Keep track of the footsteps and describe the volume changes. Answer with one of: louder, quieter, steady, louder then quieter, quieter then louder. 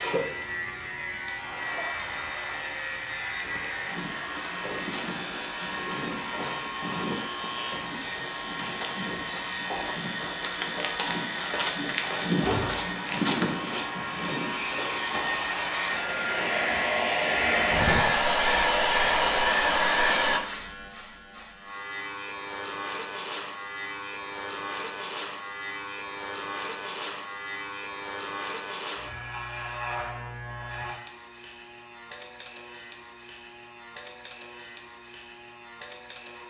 louder.